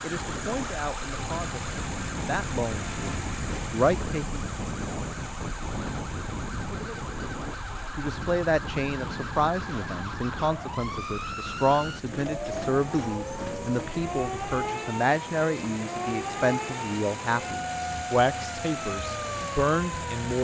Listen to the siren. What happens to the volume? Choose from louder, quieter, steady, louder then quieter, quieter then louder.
louder.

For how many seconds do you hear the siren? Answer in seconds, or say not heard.
20 s.